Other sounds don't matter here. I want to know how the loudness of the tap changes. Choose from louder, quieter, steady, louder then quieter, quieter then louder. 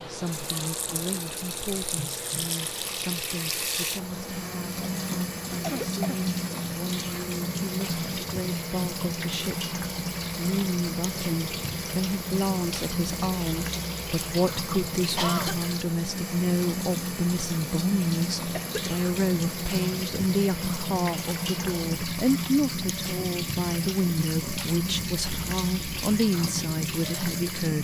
steady.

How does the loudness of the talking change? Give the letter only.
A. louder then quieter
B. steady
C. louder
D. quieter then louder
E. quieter
C.